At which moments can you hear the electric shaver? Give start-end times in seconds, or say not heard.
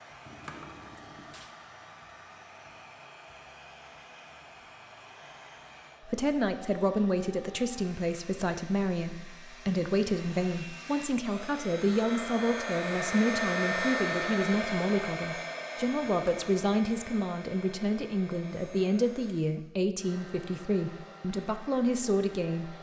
not heard.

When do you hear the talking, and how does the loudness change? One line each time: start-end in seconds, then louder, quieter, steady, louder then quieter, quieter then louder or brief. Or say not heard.
6.0-22.7 steady.